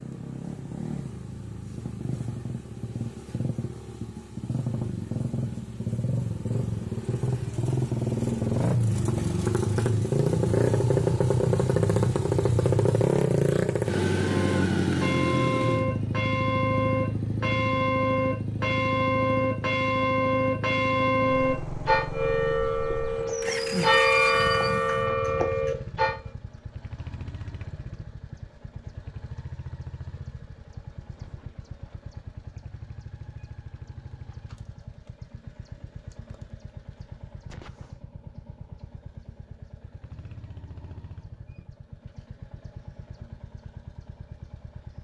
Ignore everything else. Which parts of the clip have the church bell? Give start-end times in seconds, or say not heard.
14.2-26.1.